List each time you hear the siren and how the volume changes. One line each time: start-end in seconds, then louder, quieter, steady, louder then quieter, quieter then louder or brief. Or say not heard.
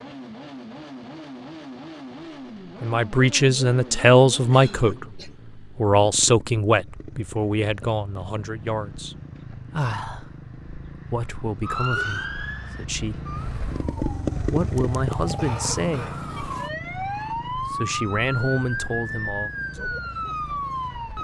11.6-21.1 quieter then louder.